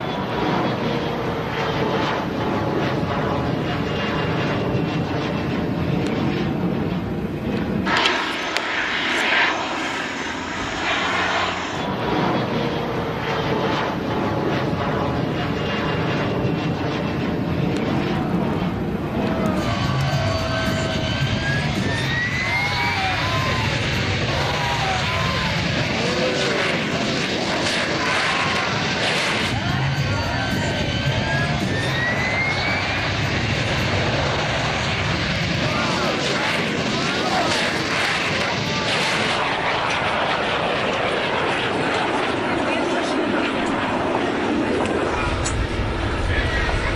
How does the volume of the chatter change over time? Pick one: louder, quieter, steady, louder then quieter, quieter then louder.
steady.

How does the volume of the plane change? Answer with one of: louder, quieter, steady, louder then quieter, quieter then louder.
steady.